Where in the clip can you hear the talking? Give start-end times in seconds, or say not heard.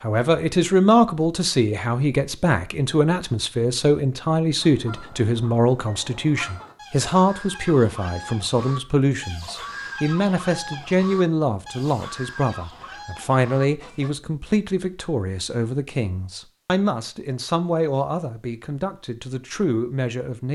0.0-20.5.